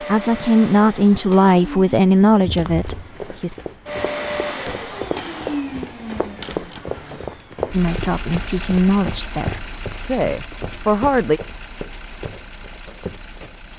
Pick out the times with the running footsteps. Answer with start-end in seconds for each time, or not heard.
2.4-13.6.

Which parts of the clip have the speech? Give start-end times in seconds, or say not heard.
0.0-3.5, 7.7-11.4.